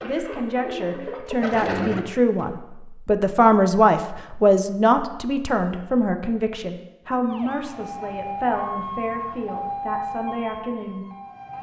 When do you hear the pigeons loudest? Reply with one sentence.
The loudest moment of the pigeons is at 2 seconds.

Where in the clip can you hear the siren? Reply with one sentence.
You can hear the siren from 7.2 to 11.5 s.